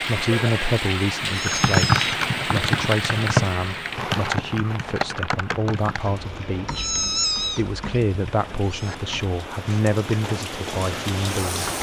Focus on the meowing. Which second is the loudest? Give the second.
7 s.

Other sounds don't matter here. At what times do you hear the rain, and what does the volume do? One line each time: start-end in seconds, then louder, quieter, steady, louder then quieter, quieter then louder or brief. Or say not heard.
0.0-11.7 quieter then louder.